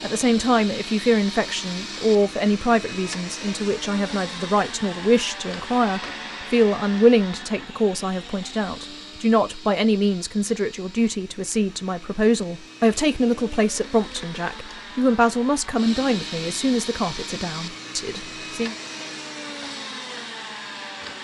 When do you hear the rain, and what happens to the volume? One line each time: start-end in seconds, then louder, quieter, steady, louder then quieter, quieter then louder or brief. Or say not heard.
not heard.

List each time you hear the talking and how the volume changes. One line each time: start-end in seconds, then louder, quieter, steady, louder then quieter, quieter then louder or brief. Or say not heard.
0.0-18.8 steady.